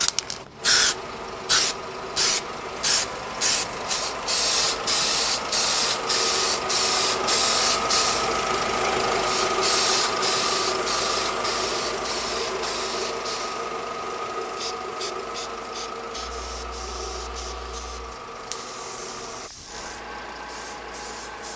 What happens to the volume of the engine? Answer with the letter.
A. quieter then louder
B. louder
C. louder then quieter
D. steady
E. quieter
C.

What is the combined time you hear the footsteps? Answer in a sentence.
You can't hear the footsteps here.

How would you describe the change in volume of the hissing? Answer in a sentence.
The loudness of the hissing goes down.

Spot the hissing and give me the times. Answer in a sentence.
You can hear the hissing from 0.0 to 21.5 s.